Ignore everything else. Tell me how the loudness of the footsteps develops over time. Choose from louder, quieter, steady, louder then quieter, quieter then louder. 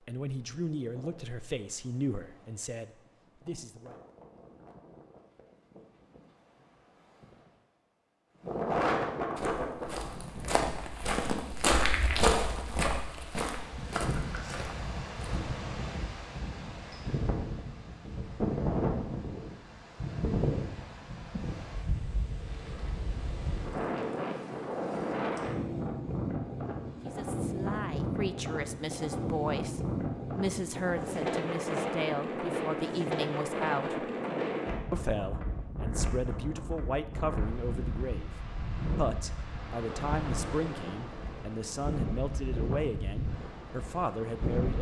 louder then quieter.